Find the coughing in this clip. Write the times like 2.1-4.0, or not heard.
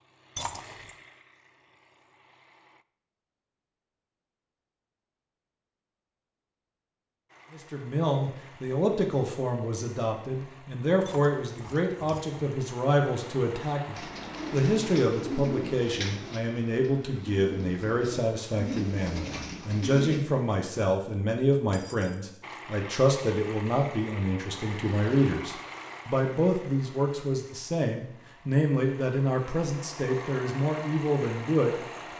not heard.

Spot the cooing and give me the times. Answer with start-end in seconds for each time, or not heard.
13.9-20.2.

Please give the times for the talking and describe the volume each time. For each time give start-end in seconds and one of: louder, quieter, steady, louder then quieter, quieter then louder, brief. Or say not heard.
7.5-32.1 steady.